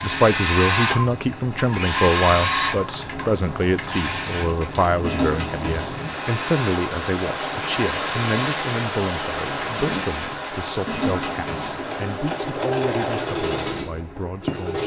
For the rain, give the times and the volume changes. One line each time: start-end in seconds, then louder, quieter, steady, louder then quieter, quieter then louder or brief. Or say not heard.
0.0-14.8 louder then quieter.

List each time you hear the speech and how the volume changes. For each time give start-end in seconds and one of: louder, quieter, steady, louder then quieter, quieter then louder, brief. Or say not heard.
0.0-14.8 quieter.